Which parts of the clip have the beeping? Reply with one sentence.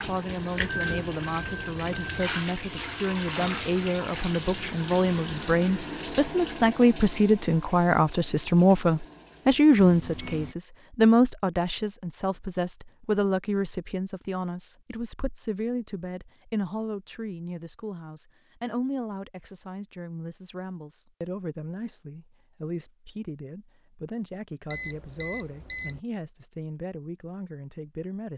You can hear the beeping from 0.7 to 2.3 s, from 9.8 to 10.6 s and from 24.7 to 26.0 s.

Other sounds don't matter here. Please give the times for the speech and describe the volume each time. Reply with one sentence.
You can hear the speech from 0.1 to 28.3 s, getting louder then quieter.